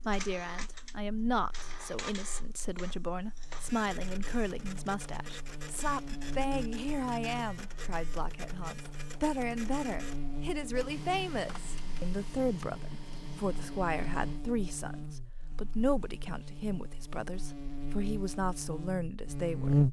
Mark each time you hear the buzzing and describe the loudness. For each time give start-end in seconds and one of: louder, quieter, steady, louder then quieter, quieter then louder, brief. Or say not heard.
0.0-19.8 louder.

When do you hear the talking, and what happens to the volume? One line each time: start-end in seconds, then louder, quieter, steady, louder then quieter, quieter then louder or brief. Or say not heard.
0.1-19.8 steady.